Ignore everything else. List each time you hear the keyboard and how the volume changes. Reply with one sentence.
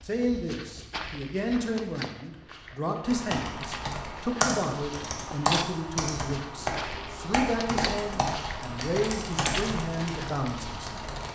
You can hear the keyboard from 3.0 to 11.3 s, at a steady volume.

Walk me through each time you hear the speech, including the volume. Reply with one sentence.
You can hear the speech from 0.0 to 11.0 s, at a steady volume.